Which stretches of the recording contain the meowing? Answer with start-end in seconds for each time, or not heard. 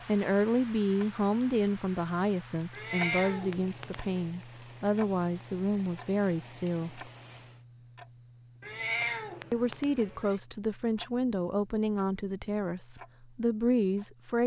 2.7-4.2, 8.6-10.4.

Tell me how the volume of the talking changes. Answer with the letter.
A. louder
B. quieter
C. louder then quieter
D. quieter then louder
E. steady
E.